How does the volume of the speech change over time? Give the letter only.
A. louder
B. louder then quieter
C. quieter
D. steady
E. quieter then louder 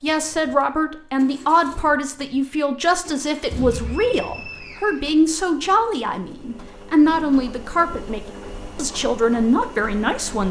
D.